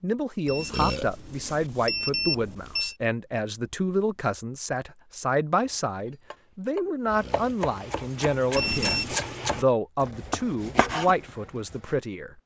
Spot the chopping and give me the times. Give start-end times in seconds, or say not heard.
5.6-11.8.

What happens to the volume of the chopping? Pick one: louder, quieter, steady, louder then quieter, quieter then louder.
louder.